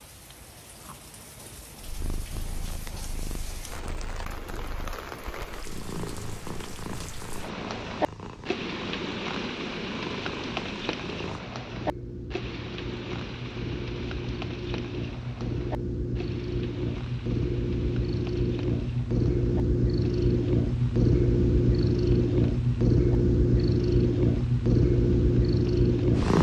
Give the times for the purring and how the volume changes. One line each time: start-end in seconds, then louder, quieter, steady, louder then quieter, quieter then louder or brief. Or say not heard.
1.8-26.3 louder.